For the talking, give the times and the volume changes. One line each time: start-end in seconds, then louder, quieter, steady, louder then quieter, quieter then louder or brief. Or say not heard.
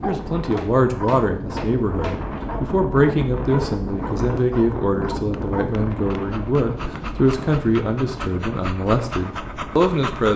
0.0-10.3 steady.